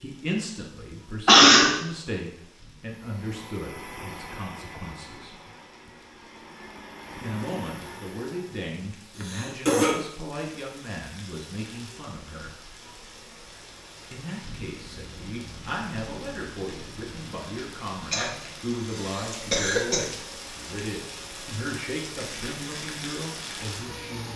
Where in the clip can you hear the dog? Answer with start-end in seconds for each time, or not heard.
not heard.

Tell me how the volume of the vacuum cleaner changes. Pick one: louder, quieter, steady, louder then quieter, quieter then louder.
quieter then louder.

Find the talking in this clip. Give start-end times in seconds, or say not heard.
0.0-5.3, 7.2-12.5, 14.1-24.3.